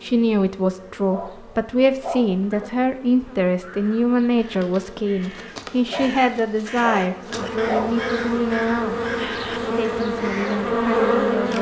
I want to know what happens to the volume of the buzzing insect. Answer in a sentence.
The volume of the buzzing insect goes up.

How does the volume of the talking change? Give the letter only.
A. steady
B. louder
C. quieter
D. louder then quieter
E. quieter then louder
C.